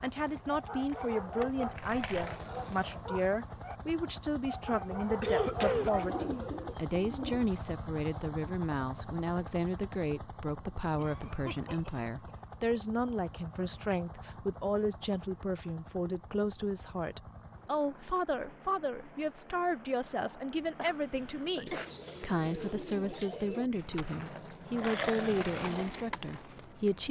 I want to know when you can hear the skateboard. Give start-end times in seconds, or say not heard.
0.1-3.0, 23.8-26.9.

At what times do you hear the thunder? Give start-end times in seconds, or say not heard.
not heard.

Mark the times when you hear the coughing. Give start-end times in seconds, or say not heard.
5.2-6.0, 10.9-12.8, 20.8-21.9.